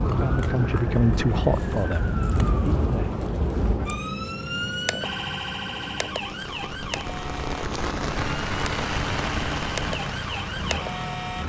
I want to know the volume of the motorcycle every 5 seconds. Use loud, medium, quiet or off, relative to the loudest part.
off, loud, loud.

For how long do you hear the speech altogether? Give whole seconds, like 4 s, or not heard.
3 s.